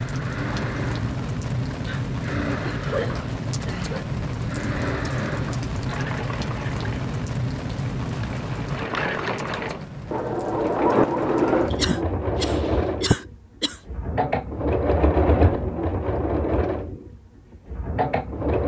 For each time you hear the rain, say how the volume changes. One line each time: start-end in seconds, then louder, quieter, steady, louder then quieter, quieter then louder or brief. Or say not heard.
0.0-12.9 quieter.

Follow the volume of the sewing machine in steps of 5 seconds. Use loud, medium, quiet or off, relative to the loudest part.
medium, medium, loud, loud.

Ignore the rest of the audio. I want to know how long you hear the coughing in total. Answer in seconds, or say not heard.
4 s.